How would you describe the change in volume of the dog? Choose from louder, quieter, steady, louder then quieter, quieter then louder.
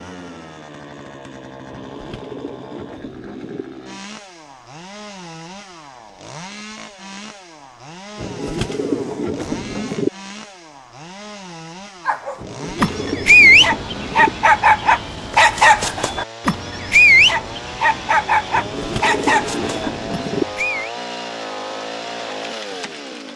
quieter.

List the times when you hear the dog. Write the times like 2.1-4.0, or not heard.
12.1-20.9.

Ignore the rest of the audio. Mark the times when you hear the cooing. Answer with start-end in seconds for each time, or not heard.
1.7-3.6, 8.2-10.1, 12.3-14.3, 18.5-20.4.